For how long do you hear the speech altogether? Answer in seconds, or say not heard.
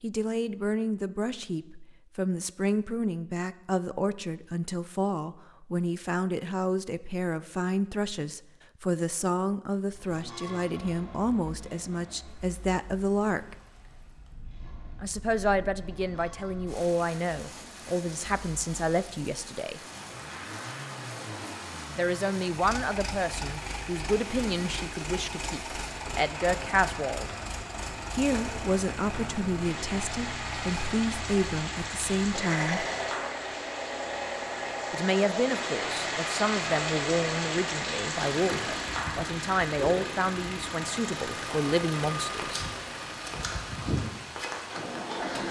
36 s.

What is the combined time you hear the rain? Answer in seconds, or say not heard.
33 s.